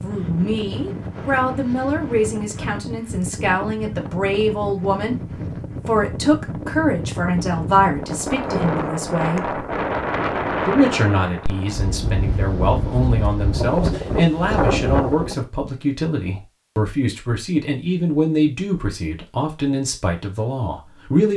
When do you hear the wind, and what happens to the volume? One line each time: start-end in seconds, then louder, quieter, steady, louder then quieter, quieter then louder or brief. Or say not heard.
0.0-15.4 louder.